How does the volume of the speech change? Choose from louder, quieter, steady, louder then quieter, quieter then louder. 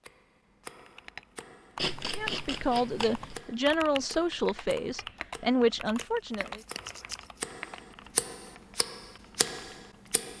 quieter then louder.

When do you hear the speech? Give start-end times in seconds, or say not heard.
2.1-6.6.